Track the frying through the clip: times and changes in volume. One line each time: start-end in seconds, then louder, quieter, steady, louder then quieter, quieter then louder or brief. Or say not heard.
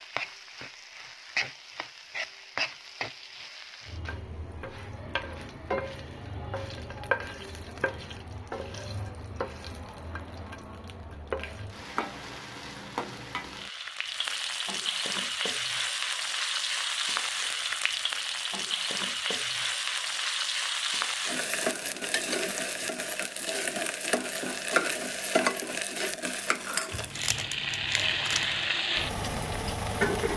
0.0-30.3 louder.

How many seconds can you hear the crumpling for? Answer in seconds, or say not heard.
2 s.